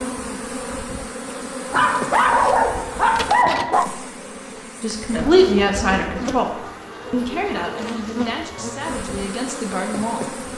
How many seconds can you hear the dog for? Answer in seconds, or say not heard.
2 s.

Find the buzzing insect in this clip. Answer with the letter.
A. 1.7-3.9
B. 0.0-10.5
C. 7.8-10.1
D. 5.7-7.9
B.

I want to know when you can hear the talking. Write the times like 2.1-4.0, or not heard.
4.8-10.4.